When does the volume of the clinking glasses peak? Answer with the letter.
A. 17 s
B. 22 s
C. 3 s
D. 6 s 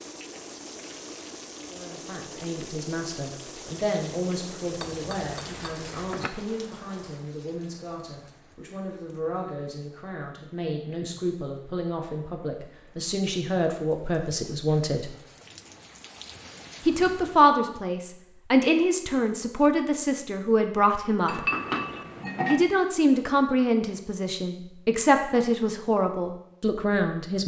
B.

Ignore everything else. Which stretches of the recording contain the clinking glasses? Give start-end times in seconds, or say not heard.
4.8-6.3, 21.2-22.6.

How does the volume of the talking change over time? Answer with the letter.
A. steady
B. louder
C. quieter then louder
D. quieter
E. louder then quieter
B.